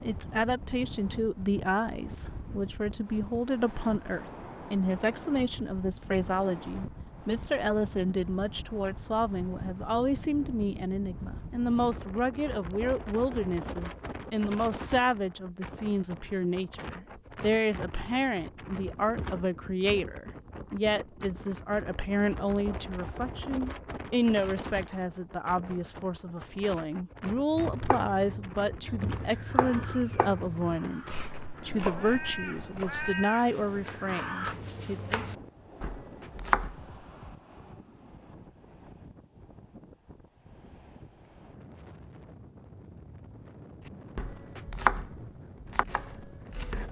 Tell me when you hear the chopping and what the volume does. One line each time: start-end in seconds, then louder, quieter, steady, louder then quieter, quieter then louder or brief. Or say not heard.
27.5-37.3 quieter then louder
43.9-46.8 brief.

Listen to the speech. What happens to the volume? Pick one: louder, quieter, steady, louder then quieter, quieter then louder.
steady.